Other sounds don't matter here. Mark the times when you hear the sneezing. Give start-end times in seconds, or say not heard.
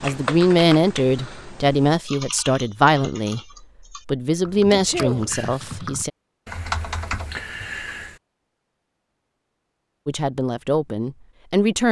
4.7-5.3.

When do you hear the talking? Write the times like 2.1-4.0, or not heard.
0.0-3.4, 4.0-6.1, 10.1-11.8.